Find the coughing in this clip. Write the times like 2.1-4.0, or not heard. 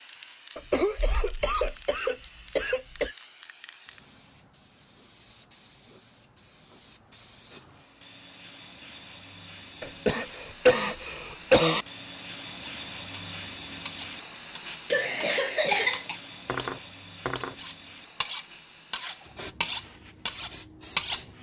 0.6-3.1, 9.8-11.8, 14.9-16.1.